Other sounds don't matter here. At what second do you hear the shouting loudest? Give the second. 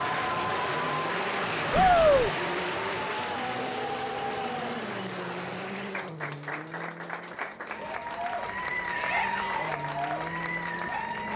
2 s.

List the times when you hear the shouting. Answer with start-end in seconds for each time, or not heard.
1.7-2.3, 8.9-9.7.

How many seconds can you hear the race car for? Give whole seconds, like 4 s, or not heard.
11 s.